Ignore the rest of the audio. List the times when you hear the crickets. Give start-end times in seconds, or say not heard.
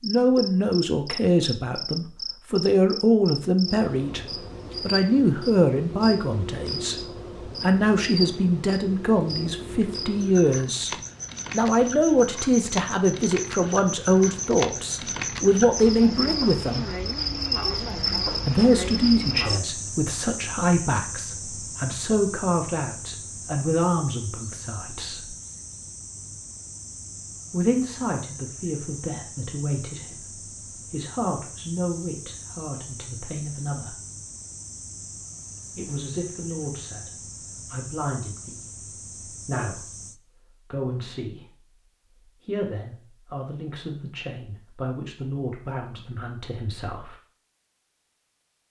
0.0-40.2.